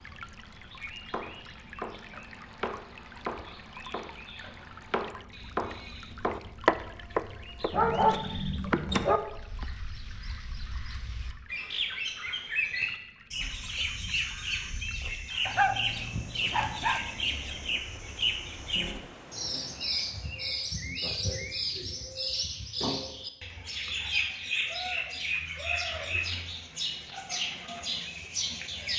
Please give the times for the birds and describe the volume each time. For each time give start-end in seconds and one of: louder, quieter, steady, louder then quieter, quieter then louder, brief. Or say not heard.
0.0-28.9 louder.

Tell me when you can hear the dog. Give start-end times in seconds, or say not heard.
7.7-9.2, 15.4-17.0.